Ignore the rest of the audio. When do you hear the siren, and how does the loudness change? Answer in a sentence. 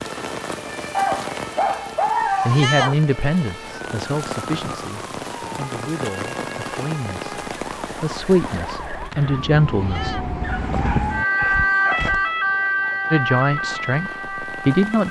You can hear the siren from 0.0 to 15.0 s, getting louder.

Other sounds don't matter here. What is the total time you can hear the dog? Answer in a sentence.
You can hear the dog for 4 seconds altogether.